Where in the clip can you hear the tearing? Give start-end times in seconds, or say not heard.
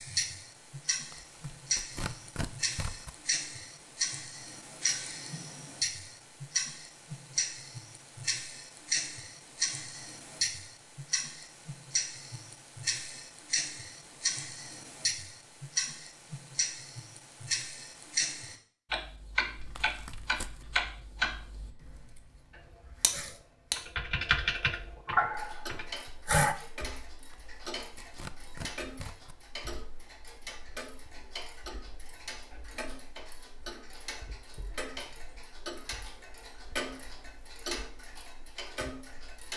1.1-3.1, 19.8-20.6, 27.3-29.4.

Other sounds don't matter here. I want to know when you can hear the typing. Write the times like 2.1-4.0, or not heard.
19.6-26.6.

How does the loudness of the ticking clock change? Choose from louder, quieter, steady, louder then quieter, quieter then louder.
quieter.